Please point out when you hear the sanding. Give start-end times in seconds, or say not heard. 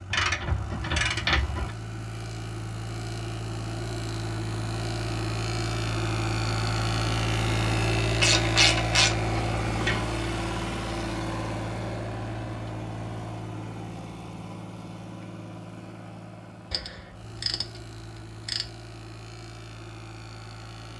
not heard.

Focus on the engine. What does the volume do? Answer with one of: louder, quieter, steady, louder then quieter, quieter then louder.
louder then quieter.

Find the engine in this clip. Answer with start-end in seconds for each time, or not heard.
0.0-20.9.